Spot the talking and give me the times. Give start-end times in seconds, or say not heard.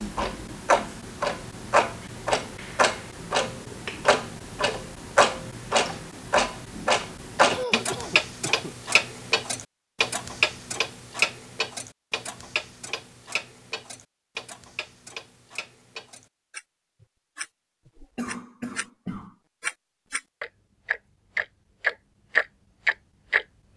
not heard.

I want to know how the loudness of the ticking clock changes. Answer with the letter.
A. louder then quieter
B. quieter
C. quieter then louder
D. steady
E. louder
C.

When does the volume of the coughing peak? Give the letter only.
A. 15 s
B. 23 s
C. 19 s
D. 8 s
D.